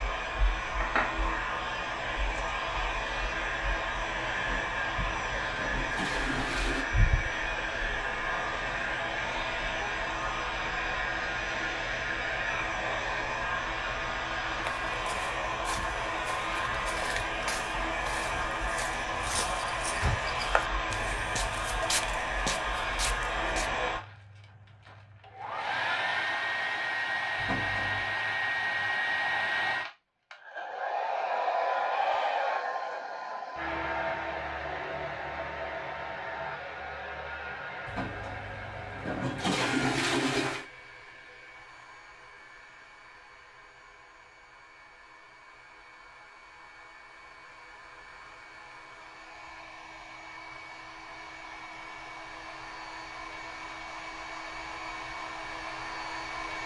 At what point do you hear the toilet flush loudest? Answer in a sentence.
The loudest moment of the toilet flush is at 40 seconds.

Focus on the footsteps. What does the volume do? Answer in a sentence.
The loudness of the footsteps goes up.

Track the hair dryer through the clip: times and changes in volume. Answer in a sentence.
The hair dryer can be heard from 0.0 to 56.6 s, getting quieter.